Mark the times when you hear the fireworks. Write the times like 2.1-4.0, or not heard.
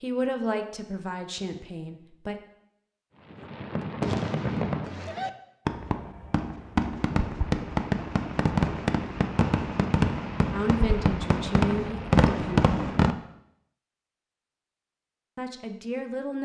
3.2-13.2.